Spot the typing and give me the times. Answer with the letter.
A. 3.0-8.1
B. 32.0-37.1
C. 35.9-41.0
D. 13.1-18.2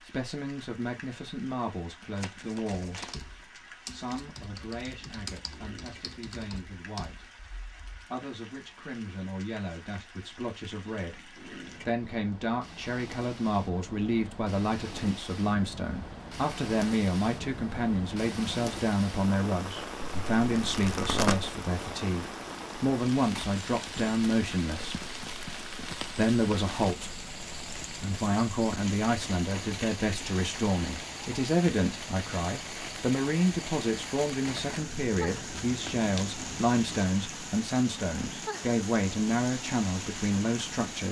A.